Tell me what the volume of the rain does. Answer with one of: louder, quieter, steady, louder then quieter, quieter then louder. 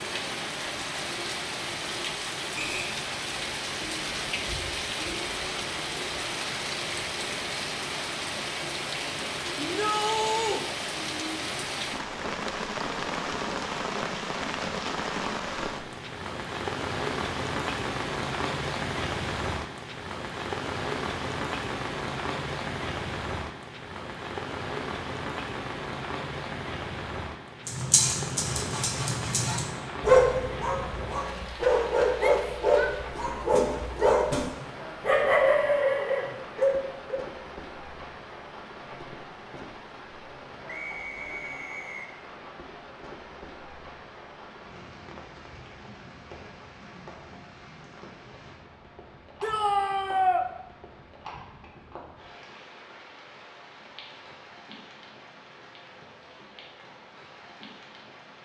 quieter.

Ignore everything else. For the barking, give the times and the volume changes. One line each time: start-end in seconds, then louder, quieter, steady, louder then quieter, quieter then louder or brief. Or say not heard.
27.6-37.2 louder.